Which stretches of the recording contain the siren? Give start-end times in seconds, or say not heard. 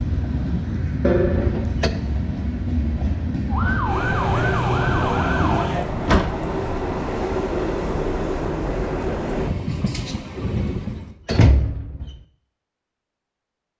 3.5-5.7.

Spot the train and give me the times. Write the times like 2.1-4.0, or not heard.
0.0-11.2.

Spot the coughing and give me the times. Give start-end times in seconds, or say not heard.
not heard.